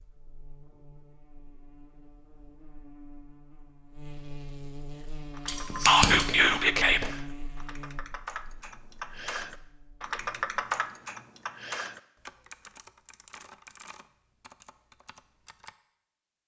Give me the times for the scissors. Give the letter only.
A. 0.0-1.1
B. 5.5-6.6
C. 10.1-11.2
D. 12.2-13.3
B.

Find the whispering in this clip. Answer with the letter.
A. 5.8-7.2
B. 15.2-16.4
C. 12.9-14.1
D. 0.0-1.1
A.